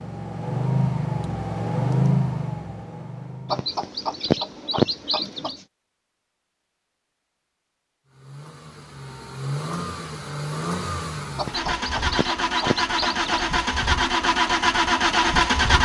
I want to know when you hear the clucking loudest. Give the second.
5 s.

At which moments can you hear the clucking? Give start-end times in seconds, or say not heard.
3.5-5.6, 11.3-13.4.